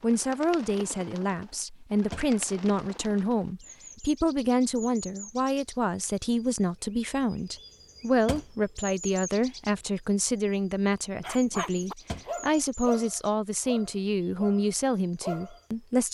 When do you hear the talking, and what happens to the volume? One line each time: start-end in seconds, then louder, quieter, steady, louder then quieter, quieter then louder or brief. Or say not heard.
0.0-16.0 steady.